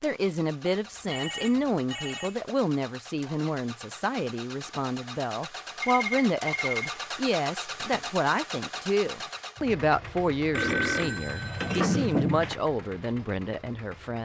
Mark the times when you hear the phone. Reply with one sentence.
You can hear the phone from 0.8 to 2.5 s, from 5.8 to 7.0 s and from 10.6 to 12.6 s.